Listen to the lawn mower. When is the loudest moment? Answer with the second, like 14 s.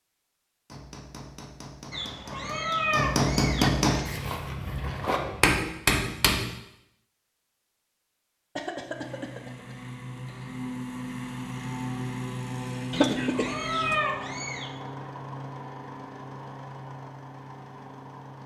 13 s.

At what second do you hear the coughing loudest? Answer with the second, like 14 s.
13 s.